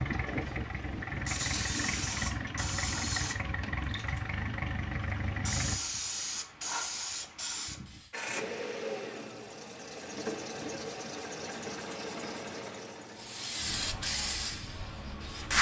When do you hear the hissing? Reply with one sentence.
You can hear the hissing from 0.1 to 8.2 s and from 13.2 to 15.5 s.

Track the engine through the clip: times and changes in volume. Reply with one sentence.
The engine can be heard from 0.0 to 5.8 s, at a steady volume; and from 8.1 to 15.5 s, getting quieter.